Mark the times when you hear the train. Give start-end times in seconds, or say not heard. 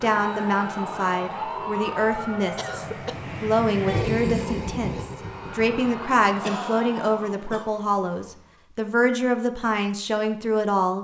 0.1-6.4.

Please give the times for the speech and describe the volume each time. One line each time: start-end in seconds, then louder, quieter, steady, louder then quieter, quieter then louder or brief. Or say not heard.
0.0-10.9 steady.